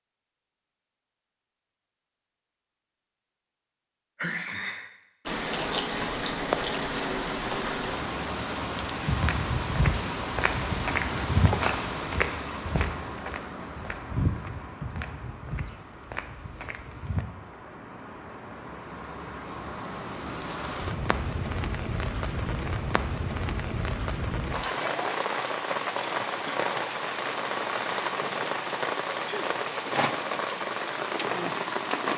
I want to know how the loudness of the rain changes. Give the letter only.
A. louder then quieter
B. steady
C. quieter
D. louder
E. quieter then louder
E.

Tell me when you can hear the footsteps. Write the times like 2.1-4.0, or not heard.
8.9-17.2.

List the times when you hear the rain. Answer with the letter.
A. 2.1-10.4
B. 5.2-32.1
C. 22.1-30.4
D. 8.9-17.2
B.